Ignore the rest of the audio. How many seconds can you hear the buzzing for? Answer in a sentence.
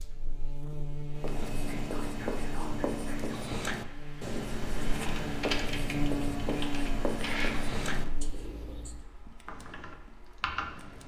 The buzzing can be heard for 8 seconds in total.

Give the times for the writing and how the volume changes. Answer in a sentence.
The writing can be heard from 1.1 to 9.1 s, at a steady volume.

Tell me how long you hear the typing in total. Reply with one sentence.
The typing can be heard for 7 seconds in total.